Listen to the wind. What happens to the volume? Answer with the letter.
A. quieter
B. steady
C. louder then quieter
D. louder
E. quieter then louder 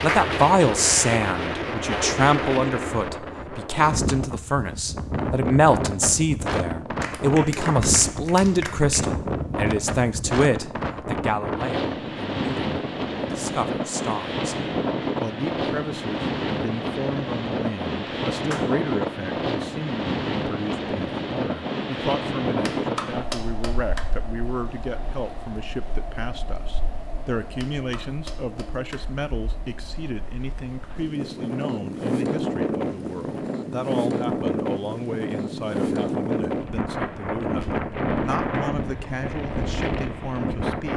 E.